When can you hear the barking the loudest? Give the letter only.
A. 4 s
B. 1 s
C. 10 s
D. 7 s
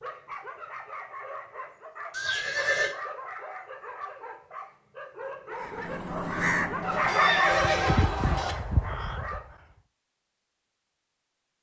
D.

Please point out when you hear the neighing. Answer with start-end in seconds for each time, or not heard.
2.1-3.0, 6.8-8.6.